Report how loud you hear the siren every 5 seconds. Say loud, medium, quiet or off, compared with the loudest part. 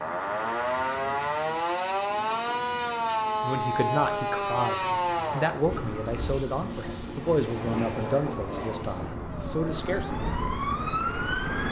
loud, medium, loud.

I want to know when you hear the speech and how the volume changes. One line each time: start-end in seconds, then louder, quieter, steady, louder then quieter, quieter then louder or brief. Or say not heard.
3.4-10.2 steady.